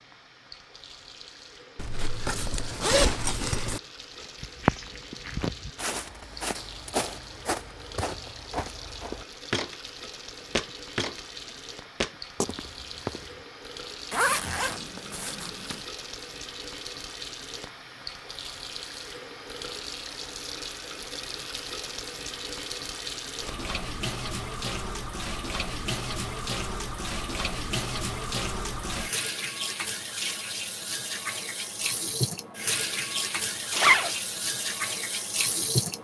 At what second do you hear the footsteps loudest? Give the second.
5 s.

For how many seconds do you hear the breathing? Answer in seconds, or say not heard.
not heard.